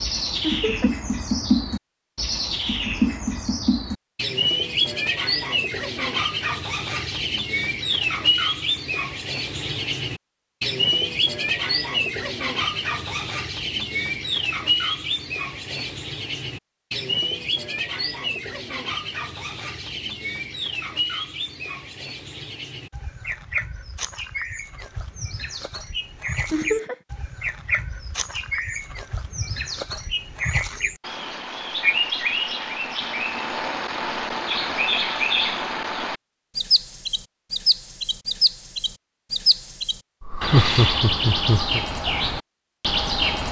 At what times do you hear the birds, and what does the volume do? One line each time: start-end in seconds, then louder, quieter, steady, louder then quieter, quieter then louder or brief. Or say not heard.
0.0-43.4 quieter then louder.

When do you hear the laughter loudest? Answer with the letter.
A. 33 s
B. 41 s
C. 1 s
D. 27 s
B.